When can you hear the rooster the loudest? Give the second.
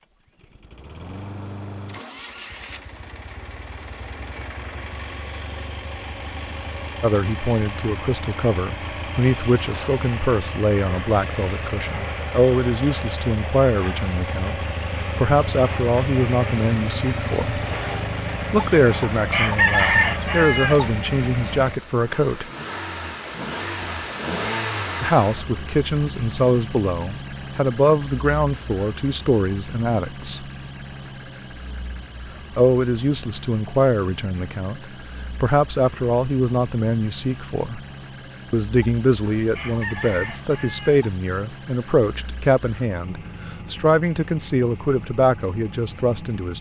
20 s.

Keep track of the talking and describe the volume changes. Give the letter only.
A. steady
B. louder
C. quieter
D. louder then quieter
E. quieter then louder
A.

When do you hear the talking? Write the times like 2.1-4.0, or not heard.
7.0-17.6, 18.5-22.4, 25.0-30.4, 32.5-37.8, 38.5-46.5.